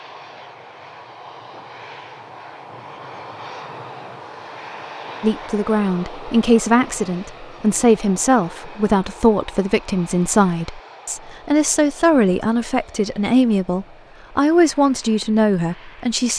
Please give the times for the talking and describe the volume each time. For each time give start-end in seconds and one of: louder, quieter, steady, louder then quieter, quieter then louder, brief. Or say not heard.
5.2-16.3 steady.